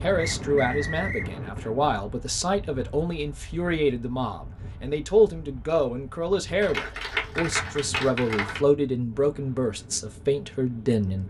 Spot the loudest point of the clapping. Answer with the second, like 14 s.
7 s.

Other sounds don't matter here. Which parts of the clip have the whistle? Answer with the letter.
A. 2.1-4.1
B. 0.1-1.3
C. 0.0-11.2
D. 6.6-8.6
B.